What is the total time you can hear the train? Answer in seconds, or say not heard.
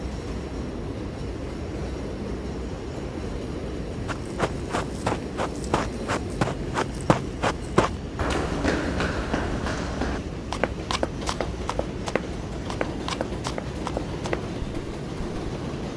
16 s.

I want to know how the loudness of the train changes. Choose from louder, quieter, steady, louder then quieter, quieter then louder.
steady.